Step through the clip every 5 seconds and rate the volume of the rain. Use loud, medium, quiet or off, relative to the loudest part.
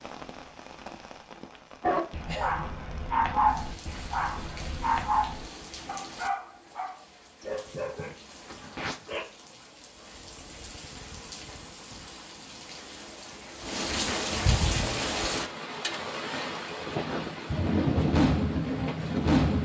quiet, quiet, medium, loud.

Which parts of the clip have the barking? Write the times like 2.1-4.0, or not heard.
1.8-9.2.